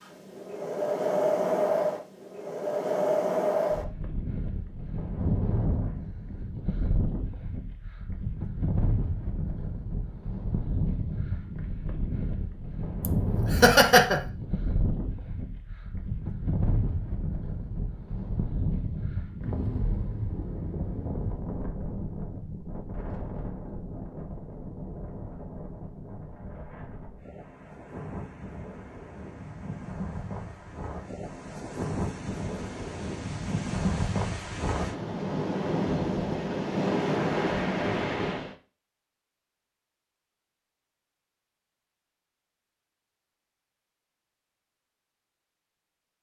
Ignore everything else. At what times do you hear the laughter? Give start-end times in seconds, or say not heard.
13.0-14.2.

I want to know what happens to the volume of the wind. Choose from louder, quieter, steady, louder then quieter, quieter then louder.
quieter then louder.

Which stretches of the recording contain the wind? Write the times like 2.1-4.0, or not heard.
0.0-38.5.